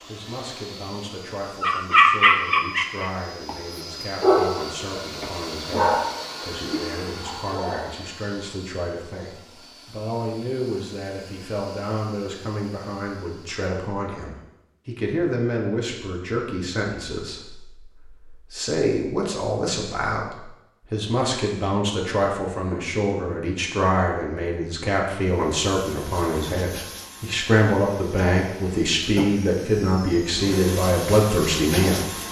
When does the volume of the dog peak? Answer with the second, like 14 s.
2 s.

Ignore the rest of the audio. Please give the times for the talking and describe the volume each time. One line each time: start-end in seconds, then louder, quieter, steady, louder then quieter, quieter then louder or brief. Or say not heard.
0.1-32.2 louder.